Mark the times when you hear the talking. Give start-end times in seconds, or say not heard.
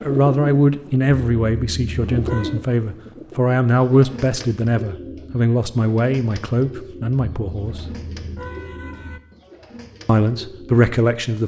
0.0-7.8, 10.1-11.4.